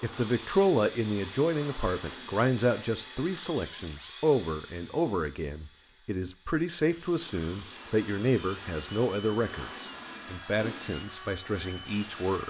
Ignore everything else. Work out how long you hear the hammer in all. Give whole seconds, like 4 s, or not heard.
not heard.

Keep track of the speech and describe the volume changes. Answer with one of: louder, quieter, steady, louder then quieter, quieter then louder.
quieter.